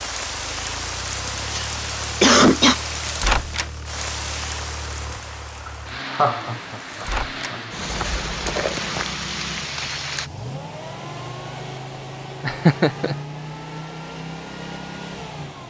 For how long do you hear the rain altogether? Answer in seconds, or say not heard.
10 s.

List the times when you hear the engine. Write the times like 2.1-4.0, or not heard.
0.0-15.6.